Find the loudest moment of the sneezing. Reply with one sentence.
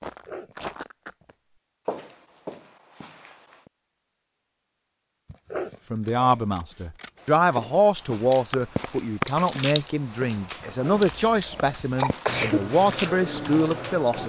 The volume of the sneezing peaks at 12 seconds.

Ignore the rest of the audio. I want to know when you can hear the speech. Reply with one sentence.
The speech can be heard from 5.9 to 14.2 s.